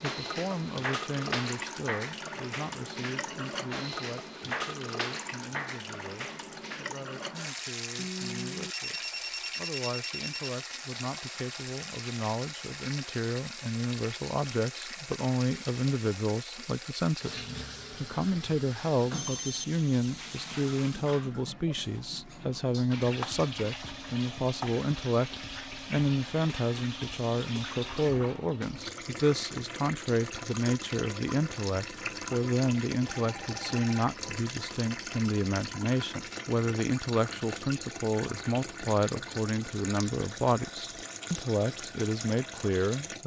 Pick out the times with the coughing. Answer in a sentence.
The coughing can't be heard in this clip.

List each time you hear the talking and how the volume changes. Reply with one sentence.
The talking can be heard from 0.0 to 43.2 s, getting louder.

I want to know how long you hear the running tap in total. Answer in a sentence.
The running tap can be heard for 43 seconds in total.